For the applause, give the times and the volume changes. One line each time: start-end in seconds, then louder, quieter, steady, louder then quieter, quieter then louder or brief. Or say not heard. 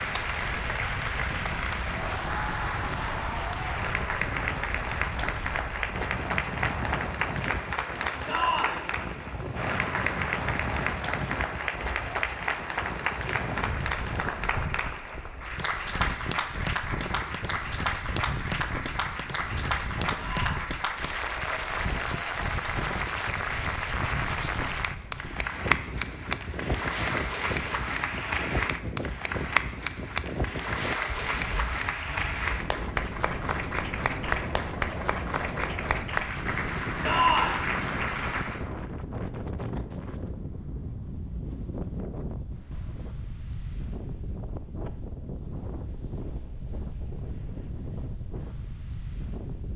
0.0-38.6 steady.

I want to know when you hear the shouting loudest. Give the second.
37 s.